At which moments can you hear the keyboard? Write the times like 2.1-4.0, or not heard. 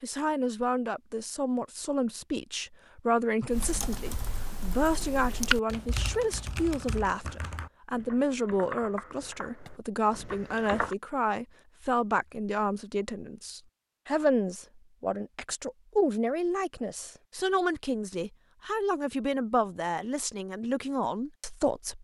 3.5-10.9.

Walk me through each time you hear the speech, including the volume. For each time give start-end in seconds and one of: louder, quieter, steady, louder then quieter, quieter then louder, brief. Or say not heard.
0.0-21.9 steady.